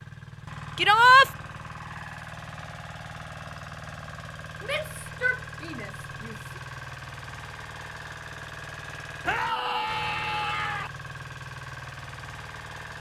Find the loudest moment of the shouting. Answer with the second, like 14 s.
1 s.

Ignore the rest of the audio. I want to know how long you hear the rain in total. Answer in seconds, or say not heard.
not heard.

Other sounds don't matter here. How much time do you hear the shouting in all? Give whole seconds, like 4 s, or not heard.
4 s.